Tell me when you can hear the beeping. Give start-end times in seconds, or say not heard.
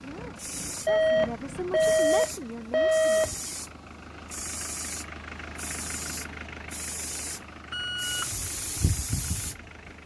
0.8-3.3, 7.7-8.3.